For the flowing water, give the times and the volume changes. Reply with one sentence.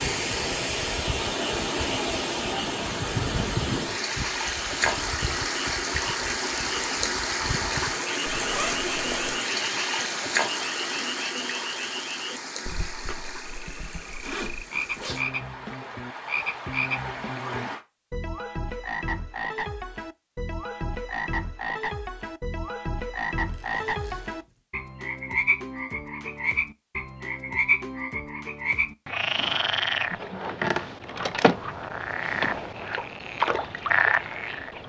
You can hear the flowing water from 0.0 to 17.8 s, getting quieter.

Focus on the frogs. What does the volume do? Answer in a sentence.
The volume of the frogs goes up.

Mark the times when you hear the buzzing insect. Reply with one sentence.
You can't hear the buzzing insect here.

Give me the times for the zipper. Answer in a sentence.
You can hear the zipper from 8.2 to 9.4 s, from 14.2 to 15.4 s and from 23.4 to 24.6 s.